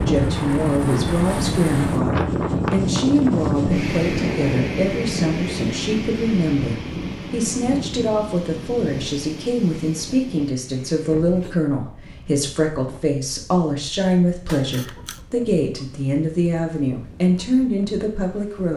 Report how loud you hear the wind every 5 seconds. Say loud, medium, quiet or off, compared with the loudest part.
loud, medium, quiet, quiet.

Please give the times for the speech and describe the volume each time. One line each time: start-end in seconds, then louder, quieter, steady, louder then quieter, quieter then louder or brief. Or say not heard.
0.0-18.7 steady.